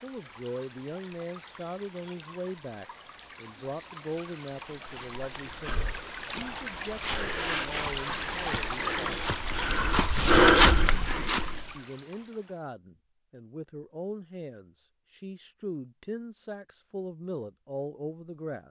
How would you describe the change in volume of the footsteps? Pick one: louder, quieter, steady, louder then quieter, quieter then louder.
louder.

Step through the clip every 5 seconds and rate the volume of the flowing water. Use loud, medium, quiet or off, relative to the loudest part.
quiet, loud, medium, off.